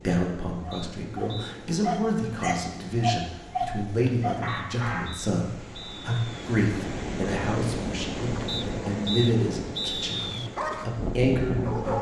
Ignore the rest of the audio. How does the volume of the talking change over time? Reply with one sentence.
The volume of the talking stays about the same.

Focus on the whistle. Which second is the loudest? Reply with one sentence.
The loudest moment of the whistle is at 10 seconds.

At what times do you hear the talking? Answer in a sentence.
You can hear the talking from 0.1 to 11.9 s.